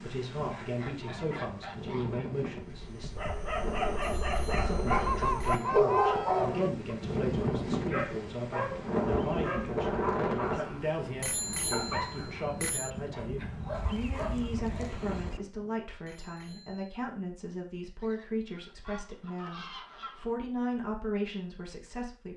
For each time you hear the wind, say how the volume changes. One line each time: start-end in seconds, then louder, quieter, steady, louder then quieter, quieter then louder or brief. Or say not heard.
0.0-15.8 louder then quieter.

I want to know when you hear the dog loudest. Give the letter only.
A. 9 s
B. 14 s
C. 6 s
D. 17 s
C.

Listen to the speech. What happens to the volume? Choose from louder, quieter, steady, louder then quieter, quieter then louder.
steady.